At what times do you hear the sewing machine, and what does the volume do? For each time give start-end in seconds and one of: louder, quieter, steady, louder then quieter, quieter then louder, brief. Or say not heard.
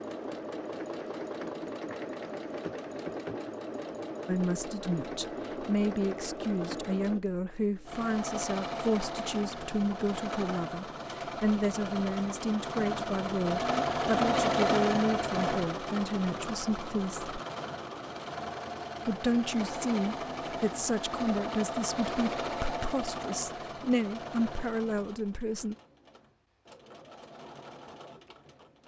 0.0-28.8 louder then quieter.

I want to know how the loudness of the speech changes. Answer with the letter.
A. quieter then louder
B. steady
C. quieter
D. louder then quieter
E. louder
B.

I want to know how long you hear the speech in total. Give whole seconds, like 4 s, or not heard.
20 s.